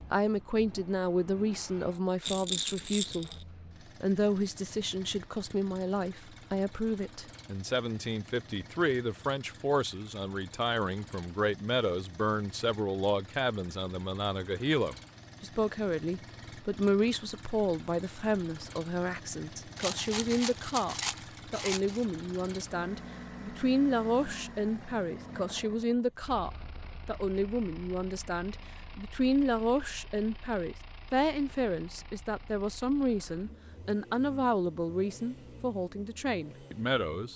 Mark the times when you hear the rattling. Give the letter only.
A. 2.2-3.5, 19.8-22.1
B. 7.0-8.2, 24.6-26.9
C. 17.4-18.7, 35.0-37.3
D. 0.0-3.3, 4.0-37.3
A.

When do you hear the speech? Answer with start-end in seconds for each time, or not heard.
0.0-3.3, 4.0-37.3.